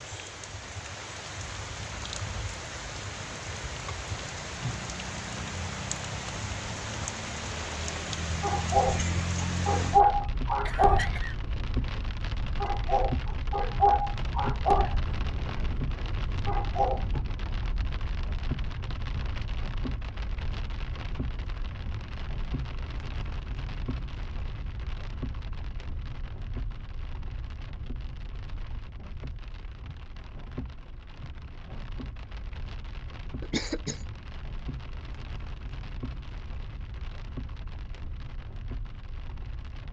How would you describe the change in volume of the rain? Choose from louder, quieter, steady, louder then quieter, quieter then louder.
quieter.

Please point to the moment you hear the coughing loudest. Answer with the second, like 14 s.
34 s.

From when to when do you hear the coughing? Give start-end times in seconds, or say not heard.
10.7-11.3, 33.4-34.0.